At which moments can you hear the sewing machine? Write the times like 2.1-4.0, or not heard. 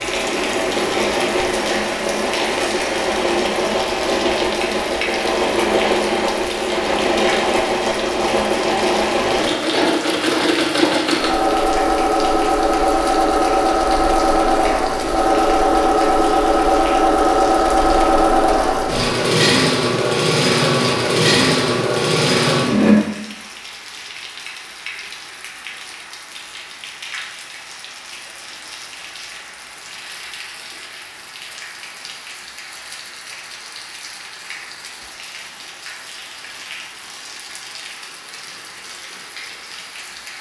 0.0-22.9.